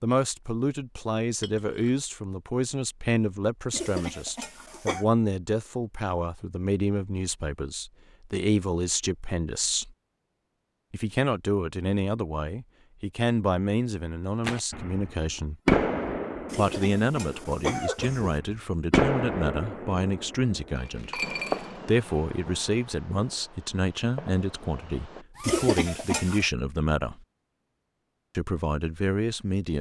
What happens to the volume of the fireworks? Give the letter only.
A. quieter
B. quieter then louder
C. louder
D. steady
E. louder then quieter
A.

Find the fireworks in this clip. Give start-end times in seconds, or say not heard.
14.4-25.6.